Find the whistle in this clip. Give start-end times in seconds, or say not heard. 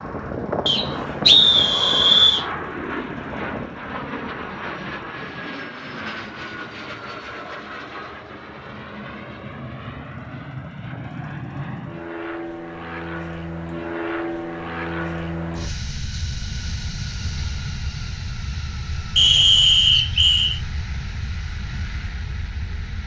0.7-2.5, 19.1-20.6.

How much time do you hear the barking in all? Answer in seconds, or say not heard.
not heard.